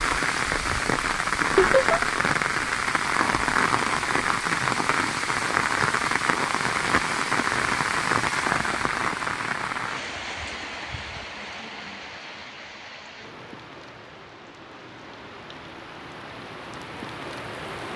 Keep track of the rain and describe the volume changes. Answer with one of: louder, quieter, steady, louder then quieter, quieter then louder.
quieter.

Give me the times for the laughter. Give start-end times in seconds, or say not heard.
1.6-2.0.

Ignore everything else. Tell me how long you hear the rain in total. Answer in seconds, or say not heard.
18 s.